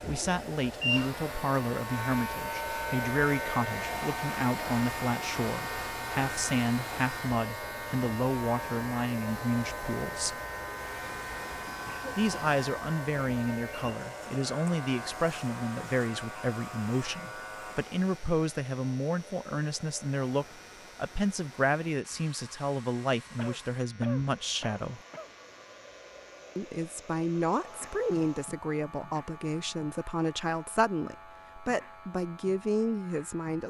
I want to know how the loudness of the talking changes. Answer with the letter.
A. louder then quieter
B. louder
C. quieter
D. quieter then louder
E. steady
E.